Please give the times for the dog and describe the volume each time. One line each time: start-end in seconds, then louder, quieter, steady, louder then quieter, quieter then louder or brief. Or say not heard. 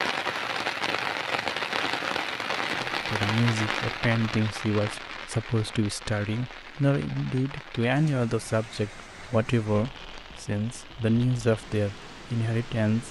not heard.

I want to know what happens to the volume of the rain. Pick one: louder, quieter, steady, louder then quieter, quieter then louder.
quieter.